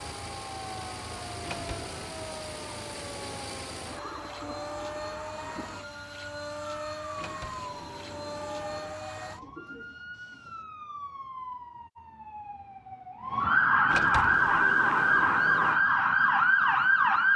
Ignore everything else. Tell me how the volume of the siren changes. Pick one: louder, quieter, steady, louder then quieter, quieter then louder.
louder.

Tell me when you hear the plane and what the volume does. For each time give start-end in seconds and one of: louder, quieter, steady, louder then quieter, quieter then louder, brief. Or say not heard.
0.0-9.4 steady.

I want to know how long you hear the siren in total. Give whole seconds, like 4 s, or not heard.
17 s.